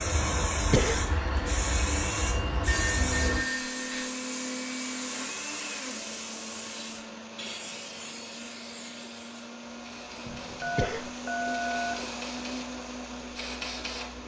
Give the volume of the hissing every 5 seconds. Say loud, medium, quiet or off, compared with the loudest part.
loud, medium, medium.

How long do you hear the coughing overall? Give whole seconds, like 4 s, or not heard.
2 s.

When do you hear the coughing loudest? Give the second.
1 s.